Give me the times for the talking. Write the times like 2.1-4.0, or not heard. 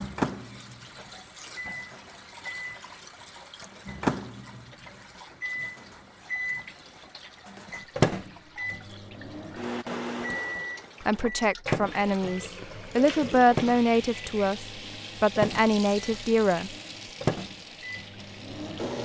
11.1-16.8.